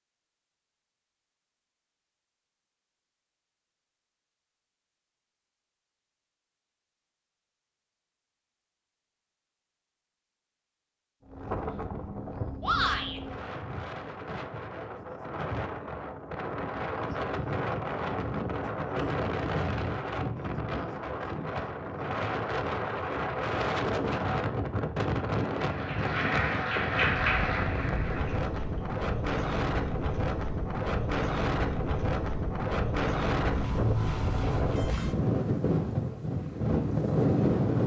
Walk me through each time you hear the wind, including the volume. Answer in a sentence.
The wind can be heard from 11.2 to 37.8 s, getting louder.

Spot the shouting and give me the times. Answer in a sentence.
The shouting can be heard from 12.6 to 13.2 s.